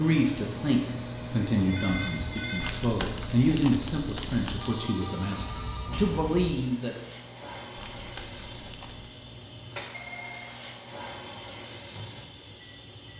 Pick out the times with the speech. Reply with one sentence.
The speech can be heard from 0.0 to 7.0 s.